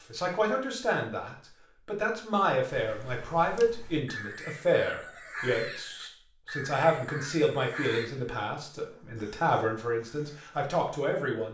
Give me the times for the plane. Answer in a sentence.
You can't hear the plane here.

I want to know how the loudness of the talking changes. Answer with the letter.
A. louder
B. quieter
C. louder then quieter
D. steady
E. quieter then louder
D.